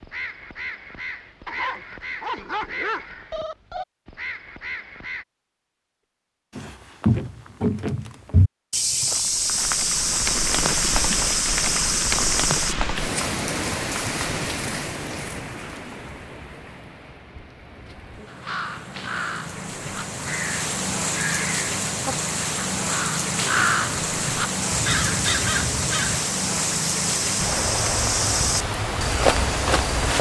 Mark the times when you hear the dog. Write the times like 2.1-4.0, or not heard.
1.4-3.1.